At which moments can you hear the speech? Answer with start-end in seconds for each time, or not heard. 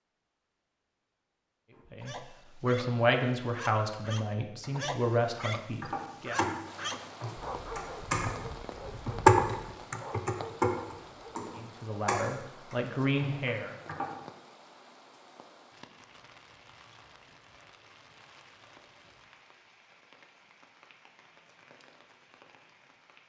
1.9-6.4, 11.6-13.8.